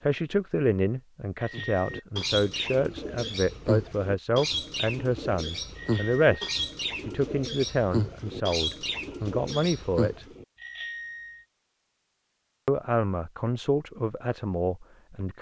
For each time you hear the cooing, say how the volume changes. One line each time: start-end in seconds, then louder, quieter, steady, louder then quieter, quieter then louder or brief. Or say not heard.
1.5-10.4 steady.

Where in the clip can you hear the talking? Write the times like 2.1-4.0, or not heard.
0.0-10.2, 12.7-15.3.